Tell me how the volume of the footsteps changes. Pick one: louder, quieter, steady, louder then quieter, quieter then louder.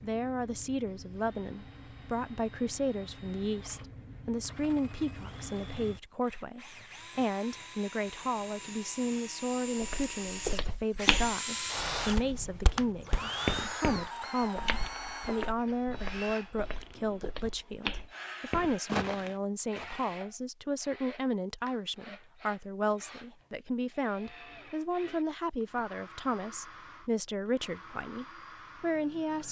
quieter then louder.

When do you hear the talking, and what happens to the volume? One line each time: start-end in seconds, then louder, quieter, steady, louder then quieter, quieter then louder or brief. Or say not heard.
0.0-29.4 steady.